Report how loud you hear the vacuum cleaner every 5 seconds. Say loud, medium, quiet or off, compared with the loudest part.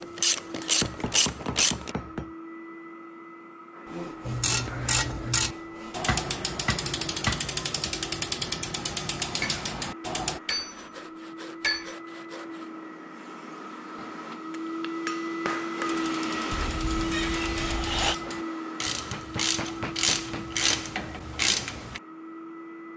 medium, medium, medium, loud, medium.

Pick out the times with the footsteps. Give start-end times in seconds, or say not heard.
not heard.